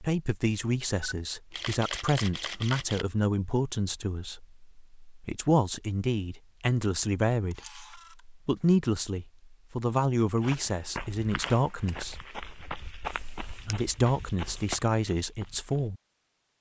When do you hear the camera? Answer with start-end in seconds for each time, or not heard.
1.0-3.0, 7.5-8.2, 13.1-13.8.